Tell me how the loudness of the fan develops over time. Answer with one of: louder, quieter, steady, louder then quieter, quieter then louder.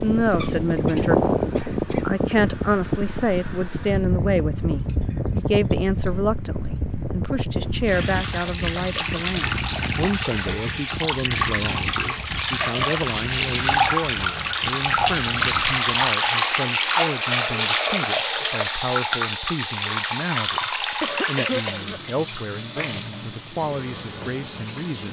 quieter.